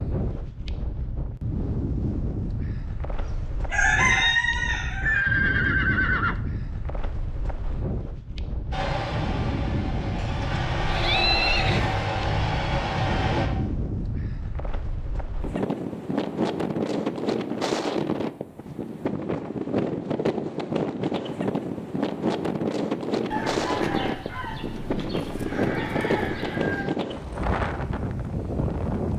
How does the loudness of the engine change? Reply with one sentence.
The loudness of the engine goes up.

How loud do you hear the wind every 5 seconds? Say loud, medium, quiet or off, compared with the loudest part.
medium, medium, medium, loud, loud, loud.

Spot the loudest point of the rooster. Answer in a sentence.
The loudest moment of the rooster is at 4 seconds.